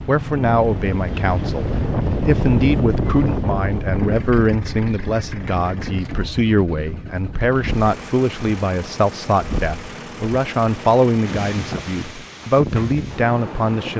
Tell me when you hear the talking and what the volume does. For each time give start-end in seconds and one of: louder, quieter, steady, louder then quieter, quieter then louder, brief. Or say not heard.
0.1-13.9 steady.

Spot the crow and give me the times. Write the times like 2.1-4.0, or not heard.
not heard.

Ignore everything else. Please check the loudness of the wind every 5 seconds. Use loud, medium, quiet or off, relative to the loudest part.
loud, medium, medium.